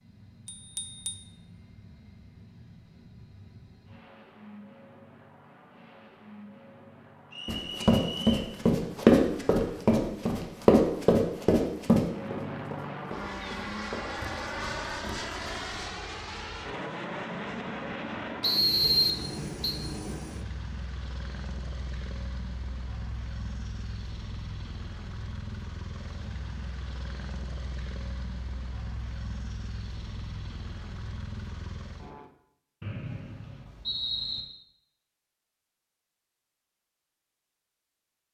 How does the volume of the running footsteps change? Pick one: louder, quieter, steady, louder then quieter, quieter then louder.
quieter.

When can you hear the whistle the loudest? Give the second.
19 s.